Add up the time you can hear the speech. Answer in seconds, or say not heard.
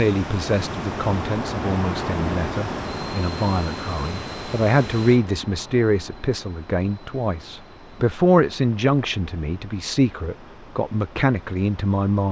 12 s.